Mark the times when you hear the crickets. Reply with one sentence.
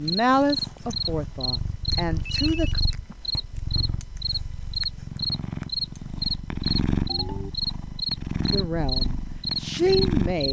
You can hear the crickets from 0.1 to 10.4 s.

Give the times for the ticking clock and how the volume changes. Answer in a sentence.
You can't hear the ticking clock here.